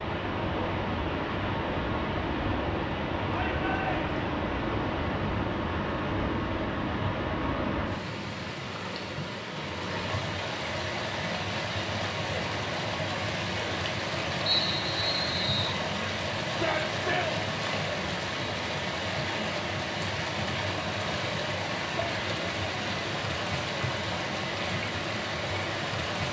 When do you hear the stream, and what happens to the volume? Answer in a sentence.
The stream can be heard from 0.0 to 26.2 s, at a steady volume.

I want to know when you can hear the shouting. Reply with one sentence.
You can hear the shouting from 3.3 to 4.1 s and from 16.4 to 17.4 s.